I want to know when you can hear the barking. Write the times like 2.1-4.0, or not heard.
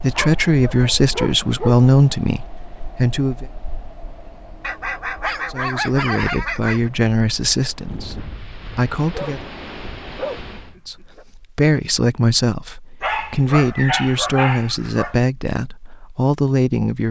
0.1-1.9, 4.6-6.9, 9.0-11.2, 13.0-15.2.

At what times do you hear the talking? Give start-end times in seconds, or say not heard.
0.0-3.5, 5.5-9.4, 10.8-17.0.